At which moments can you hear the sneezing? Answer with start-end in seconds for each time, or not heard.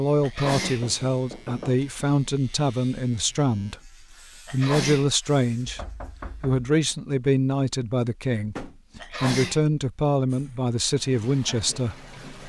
0.2-0.8, 4.5-5.1, 9.0-9.7.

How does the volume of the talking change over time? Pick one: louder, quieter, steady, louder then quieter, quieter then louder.
steady.